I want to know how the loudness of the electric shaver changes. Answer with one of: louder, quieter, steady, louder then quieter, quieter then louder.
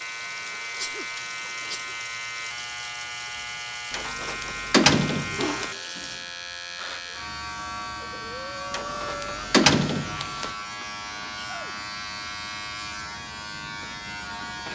steady.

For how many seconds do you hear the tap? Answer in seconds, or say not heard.
6 s.